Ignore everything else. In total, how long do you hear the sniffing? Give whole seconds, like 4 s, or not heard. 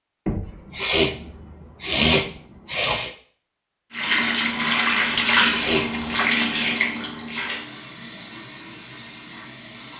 3 s.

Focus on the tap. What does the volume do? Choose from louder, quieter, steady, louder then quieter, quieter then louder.
quieter.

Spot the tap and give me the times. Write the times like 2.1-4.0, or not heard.
3.9-9.9.